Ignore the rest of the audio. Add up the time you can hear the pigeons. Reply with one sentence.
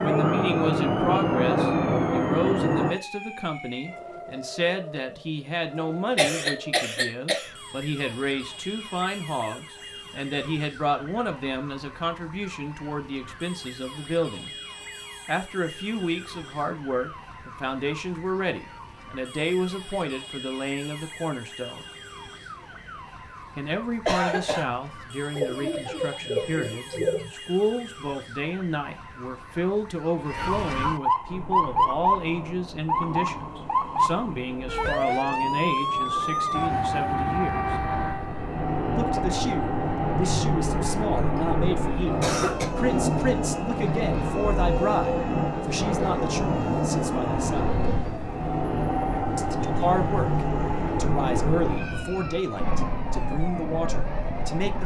You can hear the pigeons for 2 seconds altogether.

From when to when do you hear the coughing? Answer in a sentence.
You can hear the coughing from 6.2 to 7.5 s, from 24.1 to 24.6 s and from 41.4 to 42.6 s.